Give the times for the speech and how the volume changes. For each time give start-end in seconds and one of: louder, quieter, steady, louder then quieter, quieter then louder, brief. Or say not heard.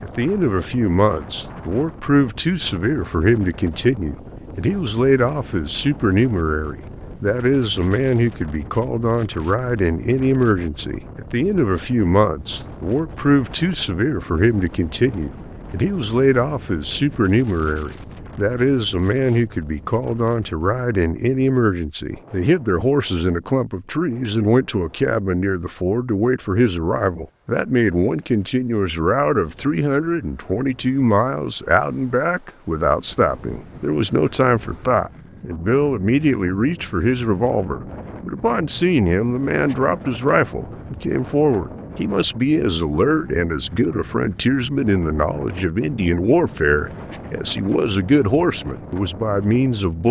0.0-50.0 steady.